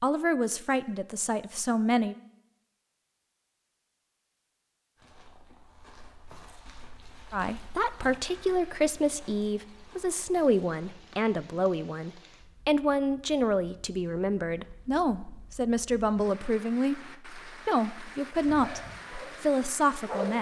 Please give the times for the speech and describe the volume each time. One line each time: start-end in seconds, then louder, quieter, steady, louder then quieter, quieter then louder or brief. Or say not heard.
0.0-2.1 brief
7.3-20.3 steady.